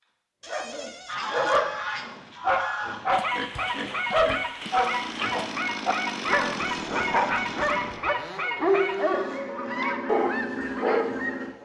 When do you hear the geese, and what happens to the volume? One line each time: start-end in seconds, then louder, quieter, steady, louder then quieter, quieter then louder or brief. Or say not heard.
1.1-11.5 steady.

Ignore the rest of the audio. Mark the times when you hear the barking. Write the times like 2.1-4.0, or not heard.
0.5-11.2.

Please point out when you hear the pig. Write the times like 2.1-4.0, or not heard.
3.1-5.5.